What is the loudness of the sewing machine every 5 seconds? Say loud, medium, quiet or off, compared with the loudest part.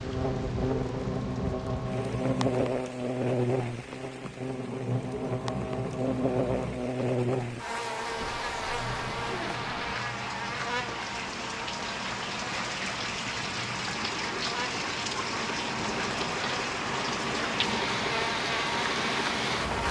loud, loud, medium, loud.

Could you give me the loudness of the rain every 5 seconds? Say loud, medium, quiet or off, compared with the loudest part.
medium, medium, loud, loud.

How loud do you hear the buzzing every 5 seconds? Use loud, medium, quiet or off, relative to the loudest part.
loud, loud, medium, loud.